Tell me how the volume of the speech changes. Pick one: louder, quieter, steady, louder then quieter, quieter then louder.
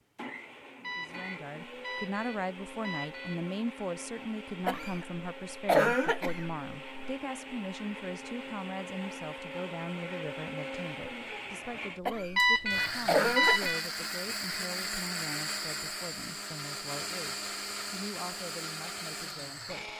quieter.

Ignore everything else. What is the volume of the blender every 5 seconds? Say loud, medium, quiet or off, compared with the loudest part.
medium, medium, loud, loud.